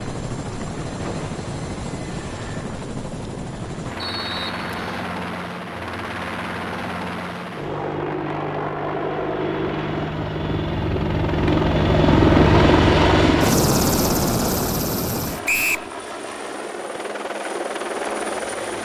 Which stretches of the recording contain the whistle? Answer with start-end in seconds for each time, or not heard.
4.0-5.1, 15.4-15.9.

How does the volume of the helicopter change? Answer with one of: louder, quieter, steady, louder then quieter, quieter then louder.
louder then quieter.